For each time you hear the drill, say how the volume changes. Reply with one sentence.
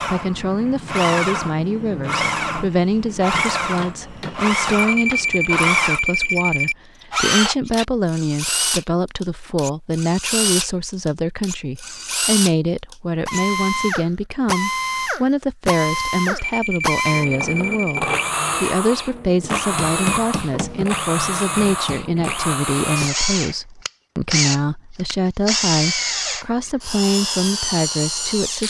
You can hear the drill from 0.0 to 28.6 s, at a steady volume.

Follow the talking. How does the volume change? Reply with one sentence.
The volume of the talking stays about the same.